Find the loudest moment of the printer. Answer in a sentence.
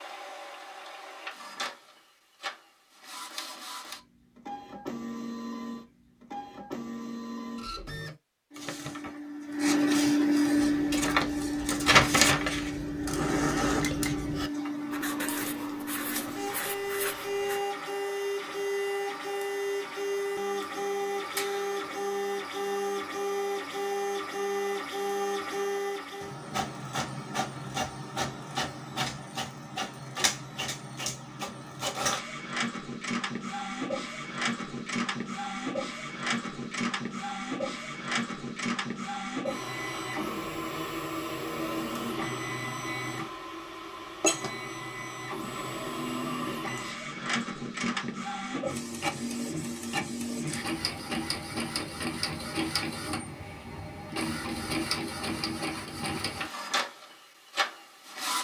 The loudest moment of the printer is at 12 seconds.